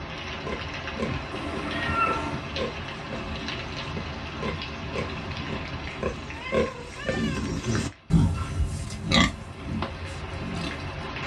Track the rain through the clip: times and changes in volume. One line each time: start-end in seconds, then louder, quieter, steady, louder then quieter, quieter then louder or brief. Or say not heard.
0.0-11.2 quieter then louder.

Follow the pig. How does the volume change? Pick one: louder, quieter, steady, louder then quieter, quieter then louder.
louder.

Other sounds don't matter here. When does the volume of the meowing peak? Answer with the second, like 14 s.
2 s.